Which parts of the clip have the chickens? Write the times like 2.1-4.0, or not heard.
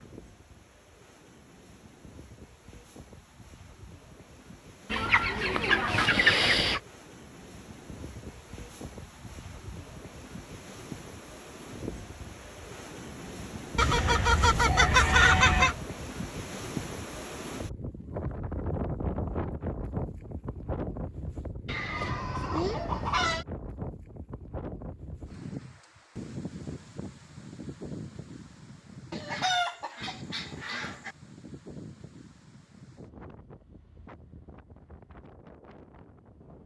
4.9-6.8, 13.8-15.8, 21.6-23.4, 29.1-31.1.